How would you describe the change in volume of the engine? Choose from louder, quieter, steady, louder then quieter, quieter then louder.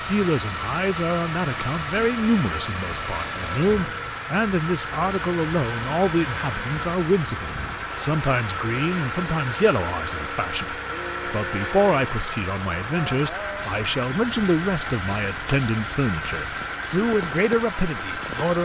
steady.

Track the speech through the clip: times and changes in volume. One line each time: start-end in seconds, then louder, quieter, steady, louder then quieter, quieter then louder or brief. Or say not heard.
0.1-18.6 steady.